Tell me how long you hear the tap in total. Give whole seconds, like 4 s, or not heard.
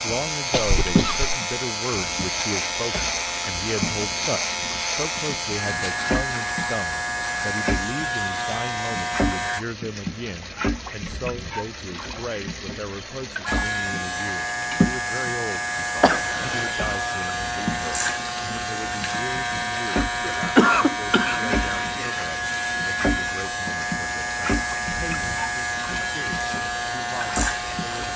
28 s.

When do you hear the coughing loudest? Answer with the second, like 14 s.
21 s.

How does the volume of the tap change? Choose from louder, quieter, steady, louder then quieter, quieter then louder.
steady.